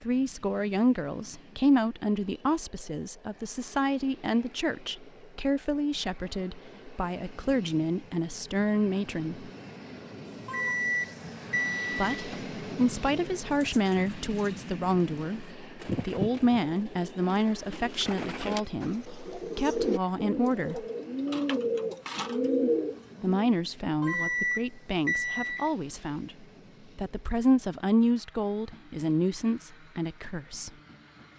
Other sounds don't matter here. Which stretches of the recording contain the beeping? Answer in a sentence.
The beeping can be heard from 10.4 to 12.4 s and from 24.0 to 25.7 s.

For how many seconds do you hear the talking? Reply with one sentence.
The talking can be heard for 26 seconds in total.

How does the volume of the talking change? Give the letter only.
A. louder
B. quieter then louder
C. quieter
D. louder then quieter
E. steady
E.